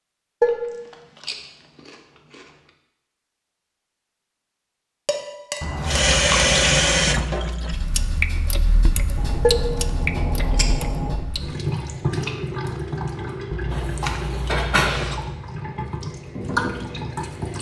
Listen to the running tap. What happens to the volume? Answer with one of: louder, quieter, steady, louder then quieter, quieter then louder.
quieter.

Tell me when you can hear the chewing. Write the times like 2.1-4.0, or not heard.
0.4-2.5, 5.6-7.3, 9.2-11.2, 13.5-15.4.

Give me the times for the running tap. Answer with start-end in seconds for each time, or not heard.
5.8-17.5.